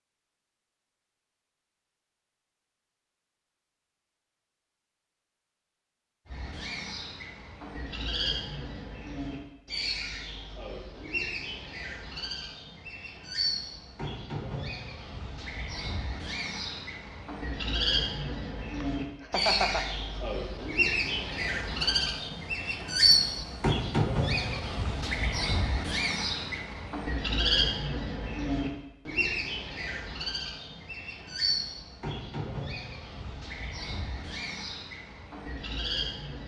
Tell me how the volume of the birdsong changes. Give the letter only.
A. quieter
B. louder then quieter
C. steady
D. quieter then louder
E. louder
B.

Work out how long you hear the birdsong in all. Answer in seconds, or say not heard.
30 s.